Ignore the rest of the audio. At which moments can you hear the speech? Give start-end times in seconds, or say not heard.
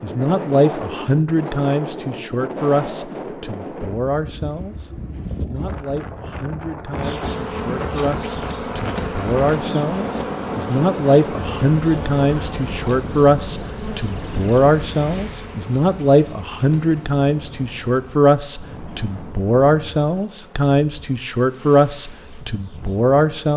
0.0-23.5.